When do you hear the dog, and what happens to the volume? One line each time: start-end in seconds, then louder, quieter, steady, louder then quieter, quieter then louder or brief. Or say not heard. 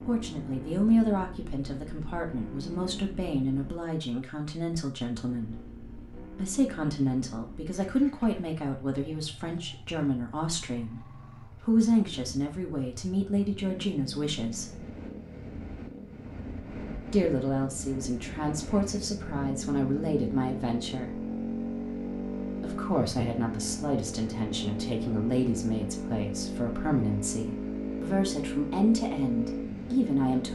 not heard.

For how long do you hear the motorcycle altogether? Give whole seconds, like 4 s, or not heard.
29 s.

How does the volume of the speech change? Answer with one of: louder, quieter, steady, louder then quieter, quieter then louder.
steady.